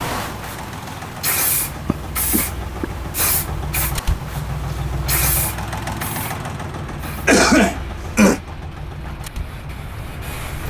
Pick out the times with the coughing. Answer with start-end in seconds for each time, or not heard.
1.9-2.9, 7.2-8.4.